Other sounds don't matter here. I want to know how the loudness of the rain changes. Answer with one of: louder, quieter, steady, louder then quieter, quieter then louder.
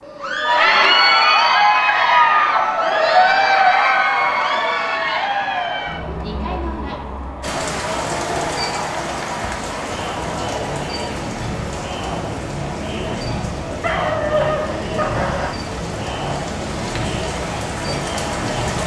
quieter then louder.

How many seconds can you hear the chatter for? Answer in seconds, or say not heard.
19 s.